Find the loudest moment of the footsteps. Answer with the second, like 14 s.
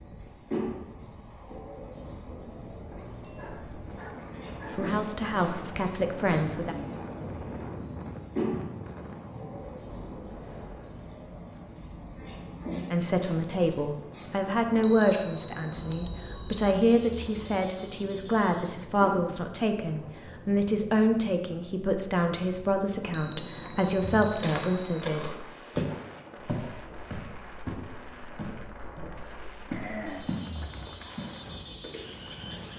26 s.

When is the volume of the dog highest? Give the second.
30 s.